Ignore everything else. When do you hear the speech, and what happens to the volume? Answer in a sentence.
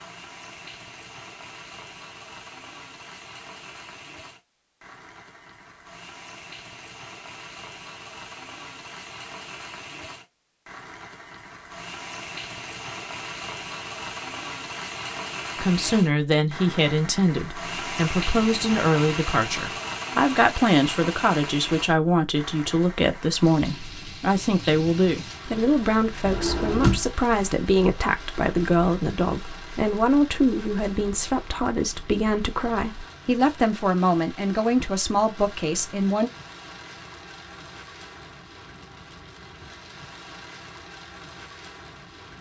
The speech can be heard from 15.6 to 36.3 s, at a steady volume.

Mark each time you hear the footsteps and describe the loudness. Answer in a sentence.
The footsteps can't be heard in this clip.